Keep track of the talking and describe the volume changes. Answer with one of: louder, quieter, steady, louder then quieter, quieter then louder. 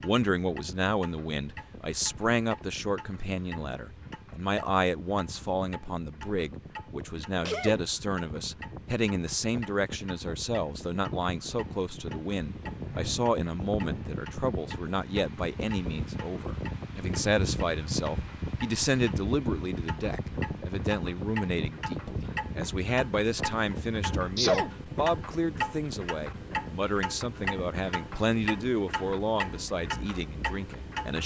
steady.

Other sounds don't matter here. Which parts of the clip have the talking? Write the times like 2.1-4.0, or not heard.
0.0-31.2.